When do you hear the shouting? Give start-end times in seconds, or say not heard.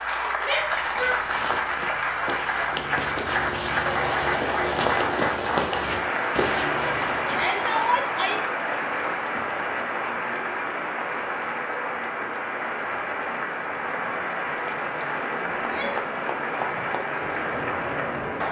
0.4-1.2, 7.2-8.3, 15.6-16.2.